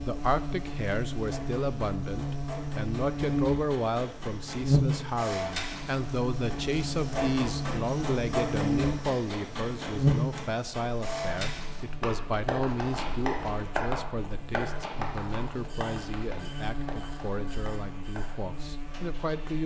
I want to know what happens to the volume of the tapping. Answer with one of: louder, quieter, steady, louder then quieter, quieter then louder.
quieter.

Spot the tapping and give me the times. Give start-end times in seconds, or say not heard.
12.0-18.4.